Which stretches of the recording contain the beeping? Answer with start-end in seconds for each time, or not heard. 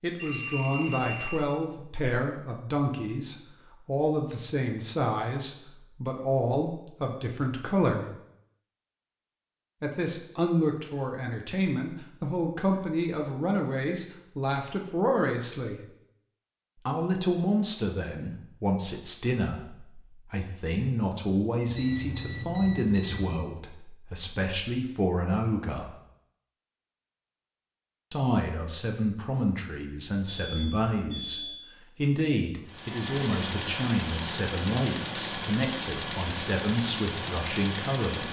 0.1-1.5, 21.6-23.4, 30.2-31.6.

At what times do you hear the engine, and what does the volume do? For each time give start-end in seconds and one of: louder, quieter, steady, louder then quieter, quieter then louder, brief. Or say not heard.
32.6-38.2 steady.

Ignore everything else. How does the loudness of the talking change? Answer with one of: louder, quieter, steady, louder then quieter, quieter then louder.
steady.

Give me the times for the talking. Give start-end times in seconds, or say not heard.
0.0-8.1, 9.8-15.8, 16.9-25.9, 28.1-38.2.